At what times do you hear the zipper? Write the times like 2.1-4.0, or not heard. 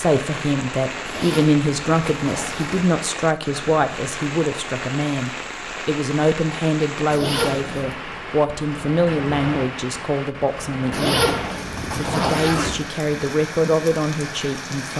1.1-2.9, 7.1-8.0, 10.9-12.8.